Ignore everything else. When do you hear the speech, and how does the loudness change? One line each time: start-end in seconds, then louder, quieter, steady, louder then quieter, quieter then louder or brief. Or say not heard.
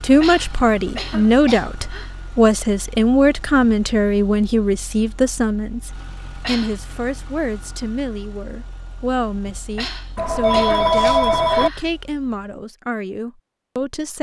0.0-14.1 quieter.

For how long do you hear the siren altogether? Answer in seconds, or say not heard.
not heard.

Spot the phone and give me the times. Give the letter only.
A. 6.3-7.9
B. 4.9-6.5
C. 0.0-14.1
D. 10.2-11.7
D.